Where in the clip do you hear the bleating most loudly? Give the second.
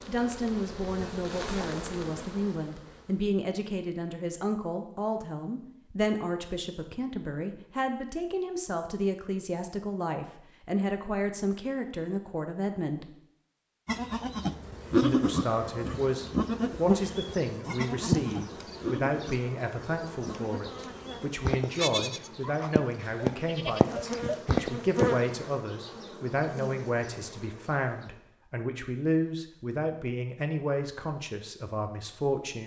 15 s.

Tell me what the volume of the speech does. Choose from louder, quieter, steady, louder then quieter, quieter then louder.
steady.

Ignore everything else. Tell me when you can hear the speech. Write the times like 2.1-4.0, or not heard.
0.1-13.1, 15.0-32.6.